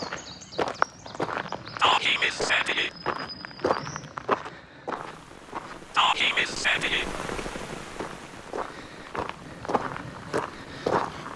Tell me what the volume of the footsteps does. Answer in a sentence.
The volume of the footsteps goes down, then up.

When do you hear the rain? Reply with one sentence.
The rain can be heard from 5.0 to 11.3 s.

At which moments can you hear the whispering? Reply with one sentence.
The whispering can be heard from 1.8 to 2.9 s and from 6.0 to 7.0 s.